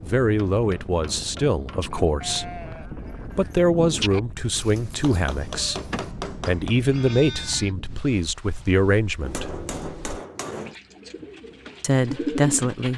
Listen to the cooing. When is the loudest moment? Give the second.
12 s.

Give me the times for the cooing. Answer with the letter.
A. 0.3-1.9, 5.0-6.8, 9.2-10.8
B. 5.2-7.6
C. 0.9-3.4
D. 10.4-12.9
D.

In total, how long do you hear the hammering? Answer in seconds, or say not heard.
5 s.